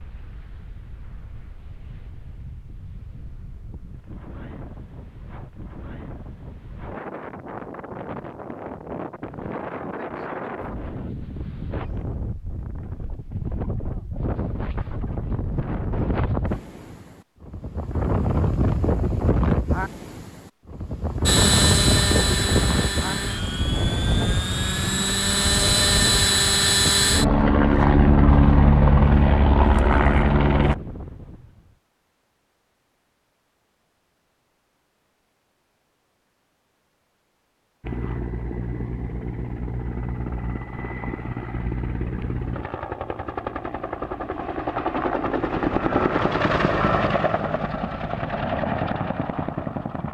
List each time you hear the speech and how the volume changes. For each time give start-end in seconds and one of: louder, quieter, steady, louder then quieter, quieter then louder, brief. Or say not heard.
not heard.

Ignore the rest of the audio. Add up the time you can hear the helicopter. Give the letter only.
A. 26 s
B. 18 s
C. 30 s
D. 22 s
D.